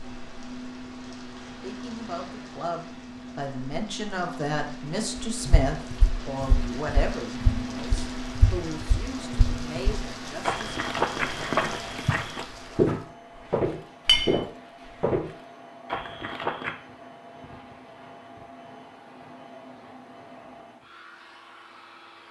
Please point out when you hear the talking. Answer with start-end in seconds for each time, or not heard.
1.6-10.7.